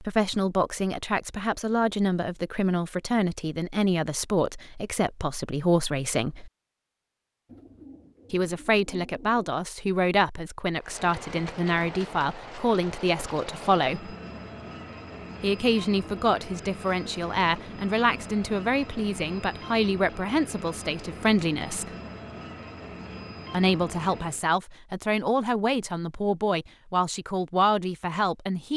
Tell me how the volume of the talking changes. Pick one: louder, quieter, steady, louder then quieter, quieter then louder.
steady.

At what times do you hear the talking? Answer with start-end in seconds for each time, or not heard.
0.0-6.5, 8.3-14.2, 15.4-21.9, 23.5-28.7.